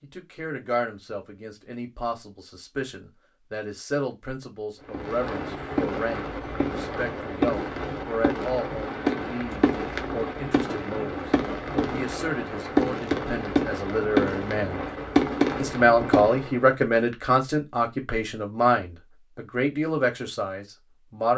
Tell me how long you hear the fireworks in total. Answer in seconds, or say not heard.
12 s.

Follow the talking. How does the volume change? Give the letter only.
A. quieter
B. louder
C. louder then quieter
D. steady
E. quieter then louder
B.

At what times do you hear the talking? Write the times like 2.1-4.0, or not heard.
0.0-14.8, 15.6-21.3.